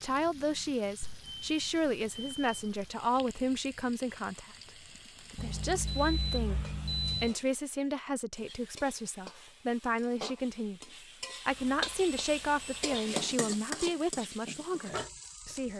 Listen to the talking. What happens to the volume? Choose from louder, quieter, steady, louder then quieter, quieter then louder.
steady.